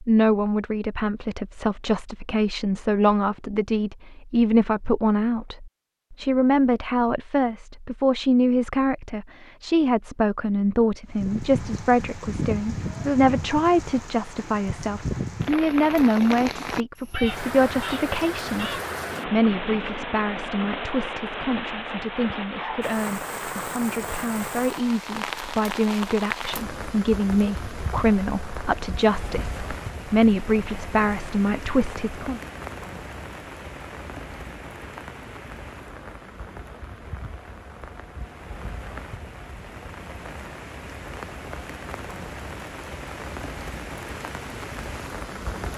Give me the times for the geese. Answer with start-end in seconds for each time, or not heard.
17.1-18.9.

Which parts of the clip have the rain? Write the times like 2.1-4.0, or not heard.
11.1-45.7.